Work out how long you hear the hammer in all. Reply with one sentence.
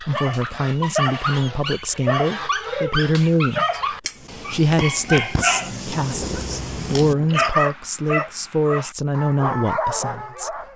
The hammer can't be heard in this clip.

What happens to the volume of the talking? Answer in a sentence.
The loudness of the talking stays about the same.